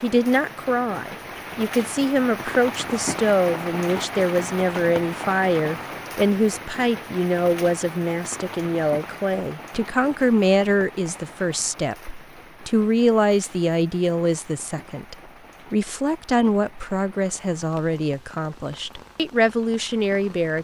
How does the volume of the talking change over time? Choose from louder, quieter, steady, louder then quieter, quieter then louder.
steady.